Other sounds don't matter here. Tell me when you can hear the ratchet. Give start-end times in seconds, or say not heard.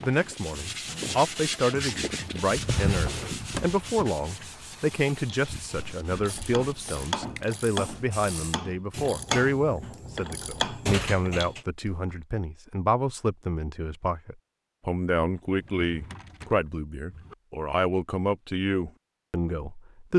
5.2-12.2.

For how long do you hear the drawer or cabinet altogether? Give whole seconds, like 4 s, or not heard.
6 s.